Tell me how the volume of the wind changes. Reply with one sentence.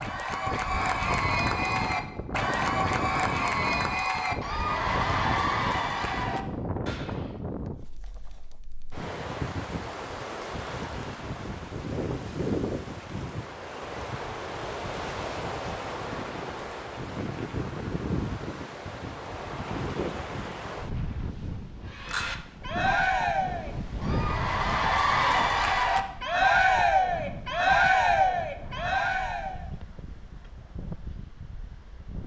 The volume of the wind goes down.